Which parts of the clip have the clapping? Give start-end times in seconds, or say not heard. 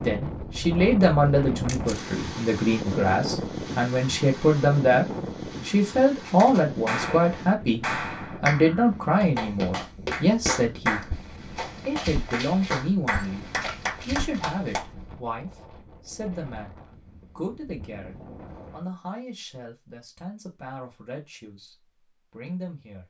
6.2-14.9.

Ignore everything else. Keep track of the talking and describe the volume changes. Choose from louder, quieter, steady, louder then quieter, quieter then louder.
quieter.